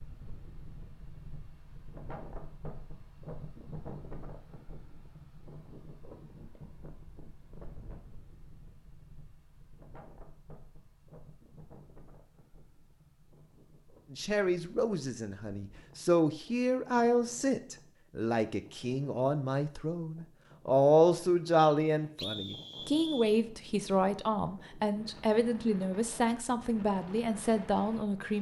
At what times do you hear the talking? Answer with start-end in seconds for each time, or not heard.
14.1-28.3.